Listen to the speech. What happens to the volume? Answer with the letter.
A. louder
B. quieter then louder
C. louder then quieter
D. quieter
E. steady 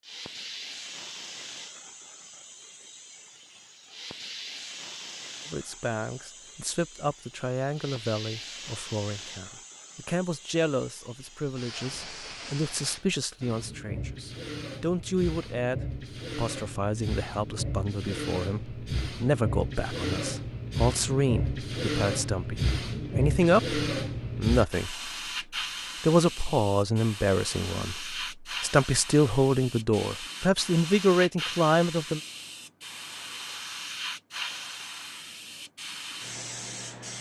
A.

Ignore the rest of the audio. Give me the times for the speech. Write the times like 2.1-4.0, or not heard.
5.5-25.1, 26.0-32.2.